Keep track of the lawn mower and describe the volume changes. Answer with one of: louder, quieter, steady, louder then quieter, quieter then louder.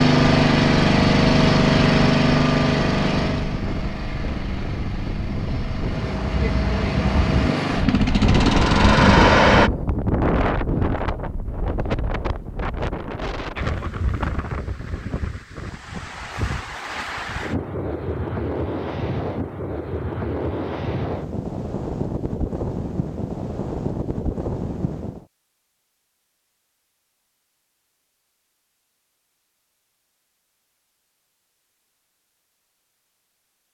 quieter then louder.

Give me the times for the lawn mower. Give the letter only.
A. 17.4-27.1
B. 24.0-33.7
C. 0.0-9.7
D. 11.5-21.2
C.